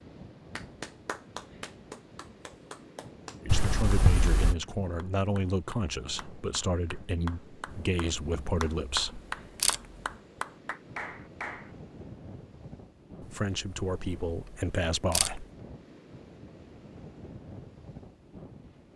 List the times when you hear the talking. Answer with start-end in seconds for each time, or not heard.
3.4-9.2, 13.3-15.4.